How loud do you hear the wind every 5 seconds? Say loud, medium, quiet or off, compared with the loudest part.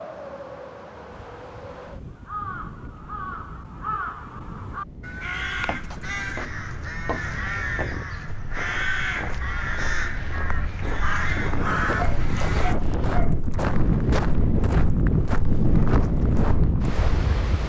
quiet, quiet, loud, loud.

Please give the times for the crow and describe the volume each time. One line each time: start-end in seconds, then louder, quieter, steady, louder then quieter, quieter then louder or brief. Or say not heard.
1.1-12.8 louder.